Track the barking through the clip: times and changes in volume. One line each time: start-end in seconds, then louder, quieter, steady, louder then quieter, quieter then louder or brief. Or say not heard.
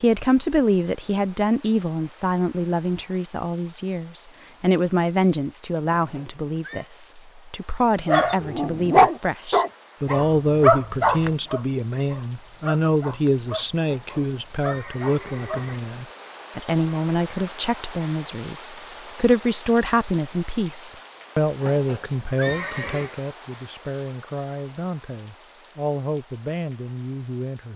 8.1-15.7 quieter.